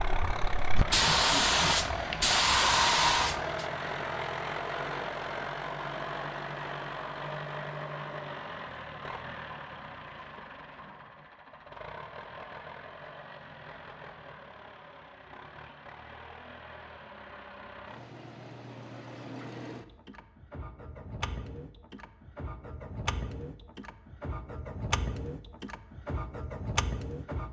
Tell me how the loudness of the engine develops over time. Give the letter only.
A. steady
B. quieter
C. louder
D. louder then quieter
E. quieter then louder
E.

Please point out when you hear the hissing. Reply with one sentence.
You can hear the hissing from 0.0 to 3.6 s.